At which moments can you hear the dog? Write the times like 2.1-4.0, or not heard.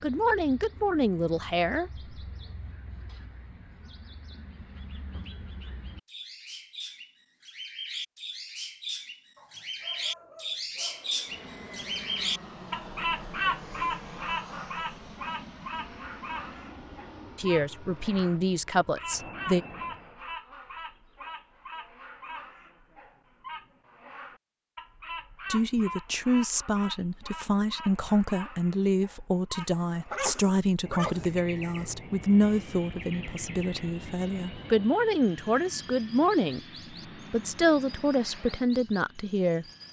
9.3-11.2, 29.6-31.9.